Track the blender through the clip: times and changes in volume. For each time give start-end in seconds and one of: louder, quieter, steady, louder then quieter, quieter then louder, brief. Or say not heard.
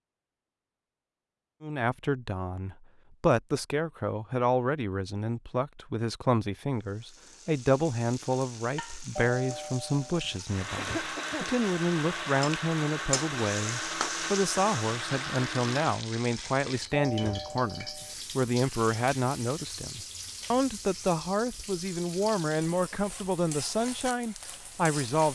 10.4-15.9 steady.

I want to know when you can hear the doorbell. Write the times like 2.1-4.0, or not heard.
9.2-10.4, 16.9-18.1.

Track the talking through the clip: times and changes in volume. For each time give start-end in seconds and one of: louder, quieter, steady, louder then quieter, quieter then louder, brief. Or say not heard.
1.6-25.3 steady.